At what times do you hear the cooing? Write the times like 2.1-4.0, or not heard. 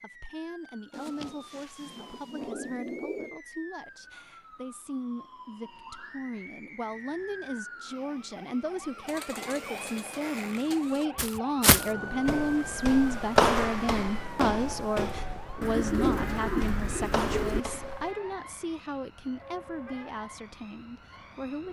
0.9-3.4, 9.1-11.1, 15.6-17.6.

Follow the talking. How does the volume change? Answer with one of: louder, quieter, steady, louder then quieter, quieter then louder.
louder then quieter.